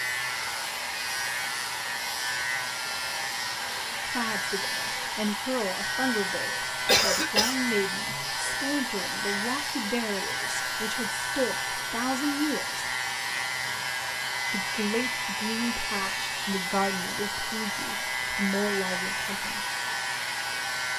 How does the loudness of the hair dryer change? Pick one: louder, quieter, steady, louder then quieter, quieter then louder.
steady.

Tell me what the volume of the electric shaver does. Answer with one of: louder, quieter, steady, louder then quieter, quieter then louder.
steady.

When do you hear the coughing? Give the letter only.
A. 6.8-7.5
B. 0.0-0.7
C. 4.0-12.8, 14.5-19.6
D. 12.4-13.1
A.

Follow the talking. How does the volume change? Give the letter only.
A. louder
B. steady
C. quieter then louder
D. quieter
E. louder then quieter
B.